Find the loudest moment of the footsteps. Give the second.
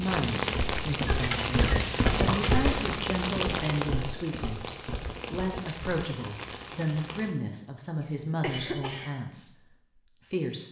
3 s.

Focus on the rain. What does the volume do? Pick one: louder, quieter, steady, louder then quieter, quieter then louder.
quieter.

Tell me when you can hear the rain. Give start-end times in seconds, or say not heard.
0.0-7.3.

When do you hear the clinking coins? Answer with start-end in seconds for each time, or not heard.
1.2-2.6, 8.4-8.9.